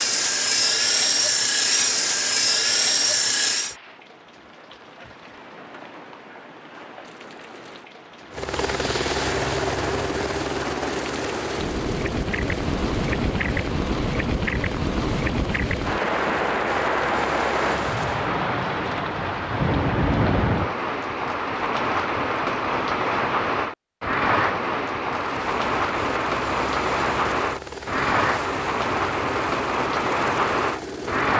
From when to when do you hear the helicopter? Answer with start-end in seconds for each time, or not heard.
0.0-3.8, 8.3-18.3, 25.1-31.3.